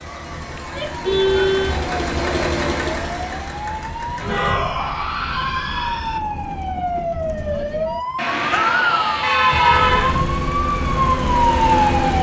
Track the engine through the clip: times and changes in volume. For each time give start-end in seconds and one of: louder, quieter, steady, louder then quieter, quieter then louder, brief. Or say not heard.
0.0-4.5 louder then quieter
9.4-12.1 brief.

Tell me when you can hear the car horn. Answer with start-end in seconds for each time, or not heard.
1.0-1.9, 4.2-4.7, 8.2-10.2.